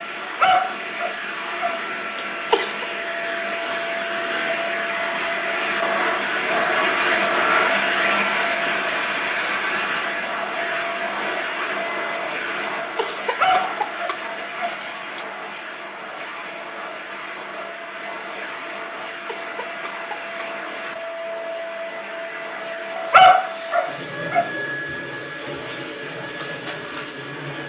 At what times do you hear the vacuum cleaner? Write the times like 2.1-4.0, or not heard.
0.0-27.6.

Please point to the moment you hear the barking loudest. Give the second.
23 s.